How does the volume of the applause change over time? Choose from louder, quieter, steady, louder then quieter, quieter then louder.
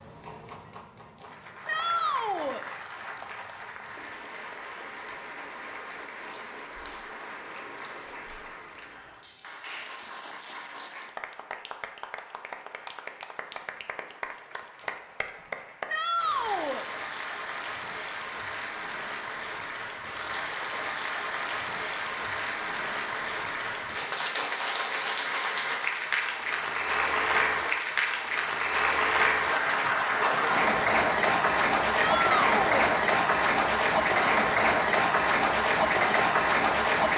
louder.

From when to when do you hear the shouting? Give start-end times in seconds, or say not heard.
1.6-2.6, 15.8-16.9, 31.9-32.9.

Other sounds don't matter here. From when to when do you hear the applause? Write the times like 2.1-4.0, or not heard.
0.0-37.1.